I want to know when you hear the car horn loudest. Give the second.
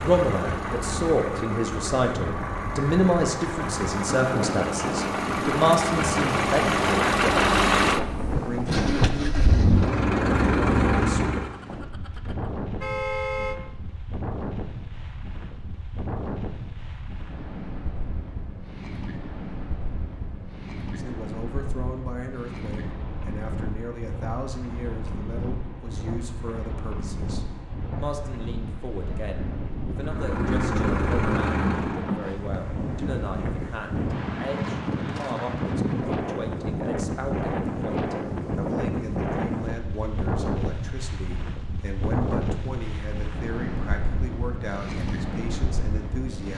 13 s.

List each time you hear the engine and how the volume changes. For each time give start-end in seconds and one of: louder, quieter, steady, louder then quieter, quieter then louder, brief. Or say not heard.
0.0-11.6 louder
29.9-32.1 brief.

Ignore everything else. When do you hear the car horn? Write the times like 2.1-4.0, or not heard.
11.5-13.6.